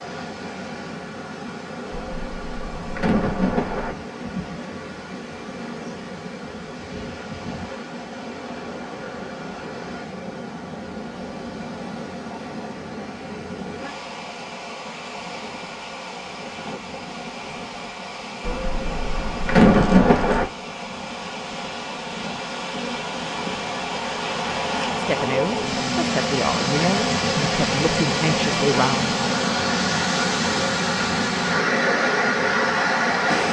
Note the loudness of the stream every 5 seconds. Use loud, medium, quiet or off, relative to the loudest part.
quiet, quiet, quiet, quiet, medium, loud, loud.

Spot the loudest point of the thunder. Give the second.
20 s.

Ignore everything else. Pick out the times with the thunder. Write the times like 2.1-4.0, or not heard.
1.9-4.0, 18.4-20.4.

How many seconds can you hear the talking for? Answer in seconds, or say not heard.
4 s.